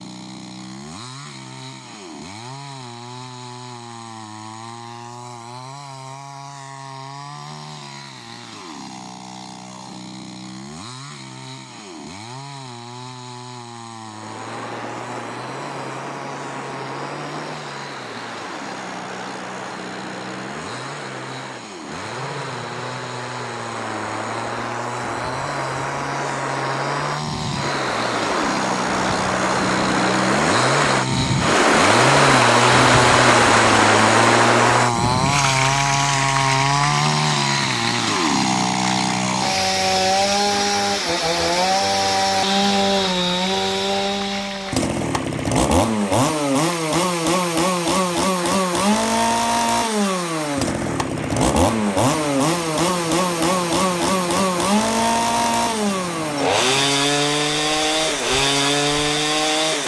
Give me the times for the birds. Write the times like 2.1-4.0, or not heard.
not heard.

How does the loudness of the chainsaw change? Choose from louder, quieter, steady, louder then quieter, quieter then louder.
louder.